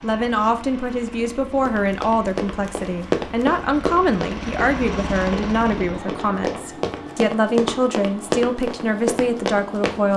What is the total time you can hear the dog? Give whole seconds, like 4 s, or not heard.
not heard.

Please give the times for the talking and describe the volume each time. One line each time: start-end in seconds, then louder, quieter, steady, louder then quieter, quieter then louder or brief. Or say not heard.
0.0-10.1 steady.